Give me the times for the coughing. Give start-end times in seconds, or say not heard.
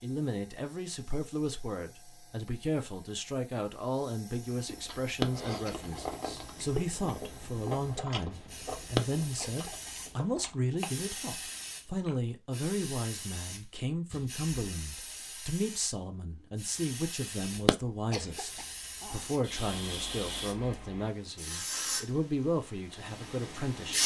5.2-6.2, 8.9-10.4, 17.6-19.2.